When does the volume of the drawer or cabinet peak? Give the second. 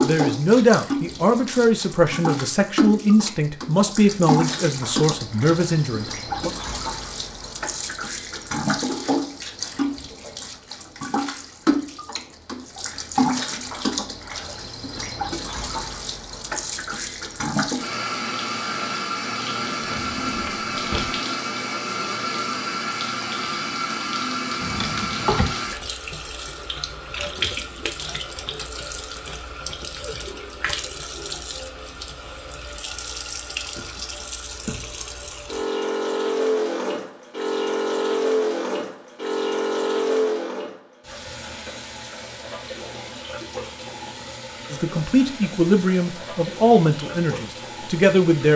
25 s.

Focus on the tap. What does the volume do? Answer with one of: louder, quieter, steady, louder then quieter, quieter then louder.
steady.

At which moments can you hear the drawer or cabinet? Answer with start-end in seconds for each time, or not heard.
19.9-21.1, 24.6-25.6.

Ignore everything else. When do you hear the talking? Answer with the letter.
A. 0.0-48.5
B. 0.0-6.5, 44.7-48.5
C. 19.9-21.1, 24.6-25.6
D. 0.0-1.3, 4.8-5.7
B.